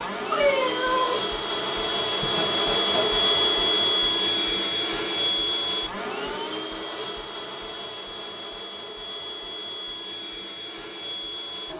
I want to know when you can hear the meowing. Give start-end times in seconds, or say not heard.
0.2-1.3.